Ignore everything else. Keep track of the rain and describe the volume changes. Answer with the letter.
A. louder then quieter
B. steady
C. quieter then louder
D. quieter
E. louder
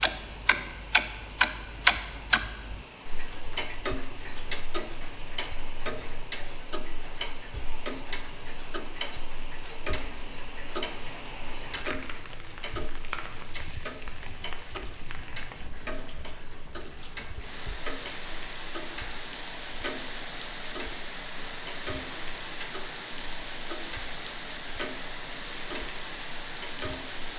E.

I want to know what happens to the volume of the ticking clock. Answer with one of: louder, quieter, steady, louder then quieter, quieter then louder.
quieter.